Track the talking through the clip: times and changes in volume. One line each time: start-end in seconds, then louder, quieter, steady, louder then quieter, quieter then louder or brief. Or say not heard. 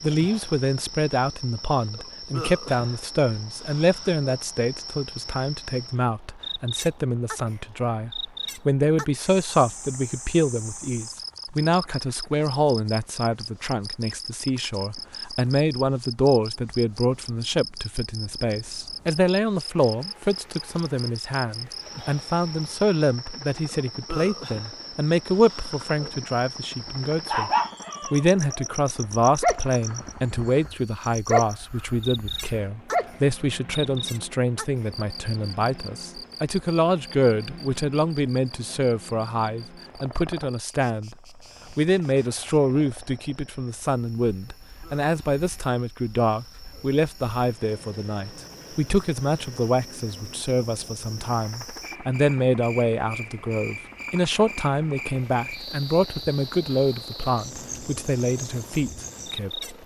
0.0-59.6 steady.